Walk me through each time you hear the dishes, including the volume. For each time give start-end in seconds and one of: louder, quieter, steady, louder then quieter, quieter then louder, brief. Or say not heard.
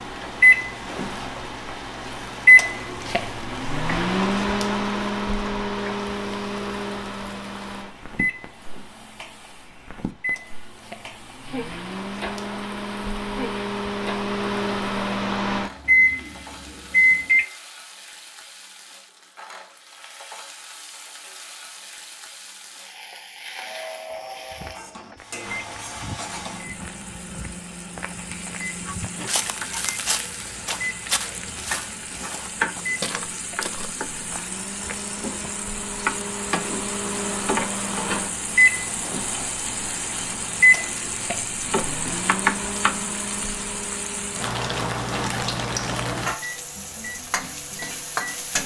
not heard.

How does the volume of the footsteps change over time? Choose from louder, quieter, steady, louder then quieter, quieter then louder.
louder.